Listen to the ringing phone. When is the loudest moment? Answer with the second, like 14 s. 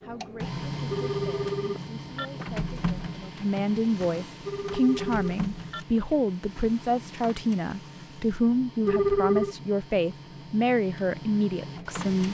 9 s.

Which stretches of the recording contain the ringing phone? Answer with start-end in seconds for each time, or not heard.
0.9-2.3, 4.5-5.8, 8.8-9.6.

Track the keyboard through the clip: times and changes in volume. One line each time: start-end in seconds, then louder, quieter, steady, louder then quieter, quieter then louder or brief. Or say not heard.
not heard.